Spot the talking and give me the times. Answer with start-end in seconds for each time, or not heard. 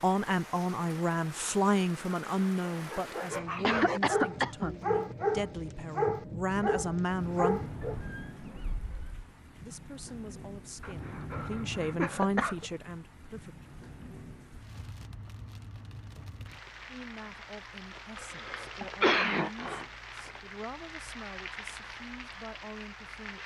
0.0-7.6, 9.6-13.8, 16.9-23.4.